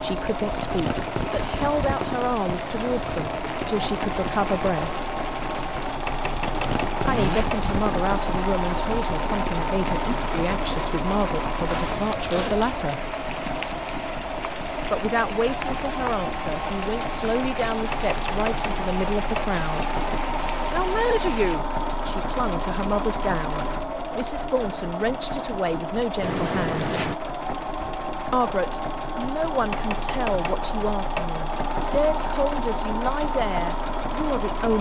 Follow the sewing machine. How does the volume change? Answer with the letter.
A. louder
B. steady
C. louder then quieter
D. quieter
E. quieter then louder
B.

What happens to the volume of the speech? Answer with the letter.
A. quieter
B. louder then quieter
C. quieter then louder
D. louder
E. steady
E.